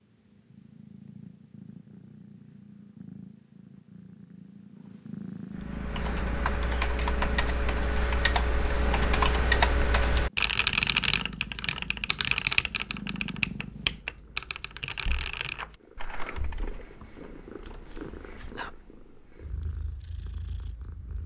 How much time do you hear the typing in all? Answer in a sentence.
The typing can be heard for 11 seconds in total.